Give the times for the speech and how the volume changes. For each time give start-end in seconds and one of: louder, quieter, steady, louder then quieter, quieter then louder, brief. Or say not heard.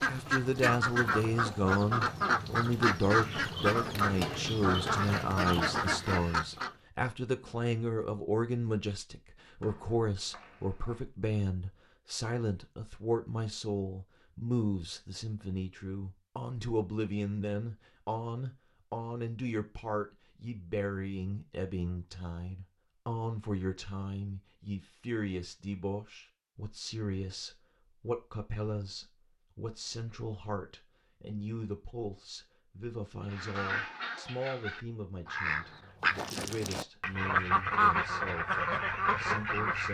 0.1-39.9 quieter.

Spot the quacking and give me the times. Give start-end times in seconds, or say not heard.
0.0-6.7, 33.2-39.9.